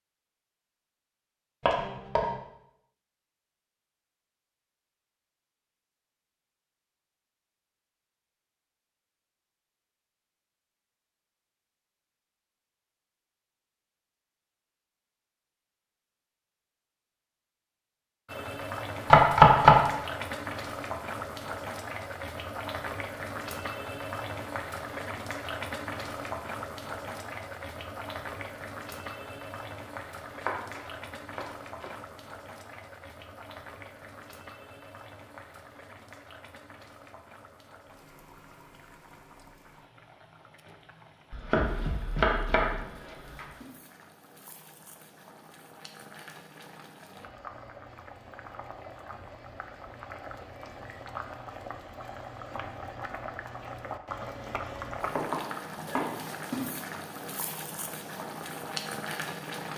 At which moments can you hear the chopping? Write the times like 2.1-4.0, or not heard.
1.6-2.4, 19.1-19.9, 30.4-31.9, 41.3-43.5, 55.1-56.2.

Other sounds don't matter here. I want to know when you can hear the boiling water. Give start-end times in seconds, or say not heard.
18.2-59.7.